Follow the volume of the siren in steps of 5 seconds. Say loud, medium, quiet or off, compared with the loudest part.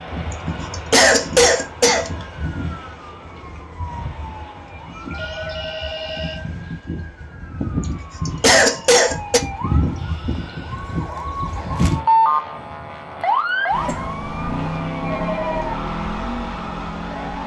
quiet, medium, loud, medium.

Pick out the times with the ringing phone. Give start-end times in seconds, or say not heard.
5.1-6.5, 15.0-15.8.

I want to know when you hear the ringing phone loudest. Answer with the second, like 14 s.
15 s.